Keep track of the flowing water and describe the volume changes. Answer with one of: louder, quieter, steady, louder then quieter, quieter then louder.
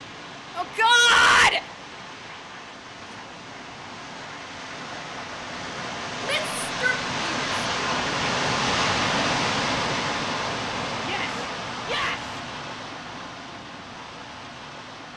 louder then quieter.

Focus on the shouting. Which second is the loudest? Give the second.
1 s.